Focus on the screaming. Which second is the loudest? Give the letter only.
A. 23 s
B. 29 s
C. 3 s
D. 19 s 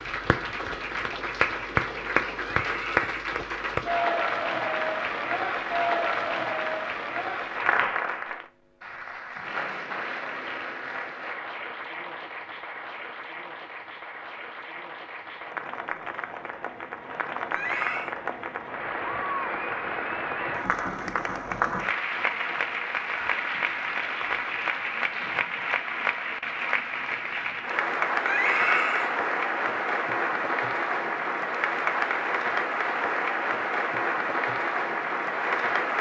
B.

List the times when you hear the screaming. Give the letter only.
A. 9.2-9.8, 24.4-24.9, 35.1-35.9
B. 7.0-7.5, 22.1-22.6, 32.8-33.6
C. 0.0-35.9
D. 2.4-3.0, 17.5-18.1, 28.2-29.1
D.